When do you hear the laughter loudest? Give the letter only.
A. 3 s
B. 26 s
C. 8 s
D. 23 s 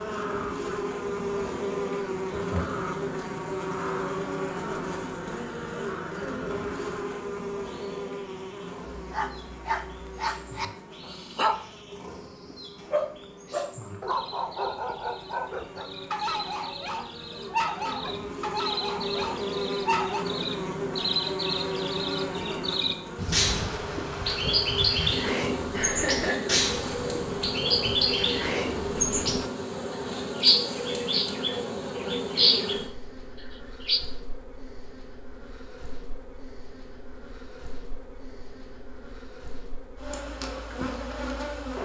B.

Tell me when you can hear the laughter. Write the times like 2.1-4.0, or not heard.
2.3-2.8, 25.7-26.6.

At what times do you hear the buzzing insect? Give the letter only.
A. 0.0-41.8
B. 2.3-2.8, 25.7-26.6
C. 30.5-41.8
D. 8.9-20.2
A.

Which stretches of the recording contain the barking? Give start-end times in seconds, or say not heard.
8.9-20.2.